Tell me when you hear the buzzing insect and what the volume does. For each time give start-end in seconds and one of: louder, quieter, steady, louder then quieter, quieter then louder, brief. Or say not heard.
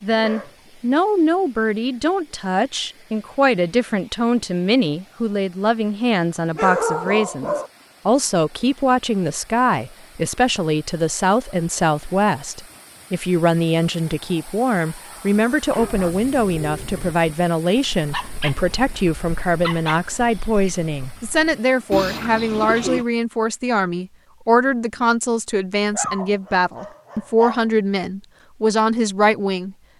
not heard.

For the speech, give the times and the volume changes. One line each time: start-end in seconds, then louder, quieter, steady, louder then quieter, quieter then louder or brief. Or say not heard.
0.0-29.8 steady.